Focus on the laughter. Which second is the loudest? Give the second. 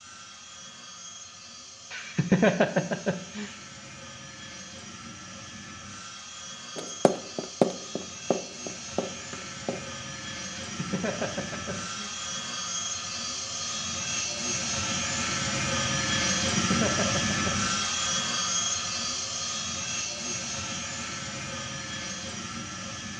2 s.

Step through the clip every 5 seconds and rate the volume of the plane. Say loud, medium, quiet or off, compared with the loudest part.
quiet, quiet, medium, loud, medium.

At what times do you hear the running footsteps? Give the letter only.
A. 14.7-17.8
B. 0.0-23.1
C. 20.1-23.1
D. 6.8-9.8
D.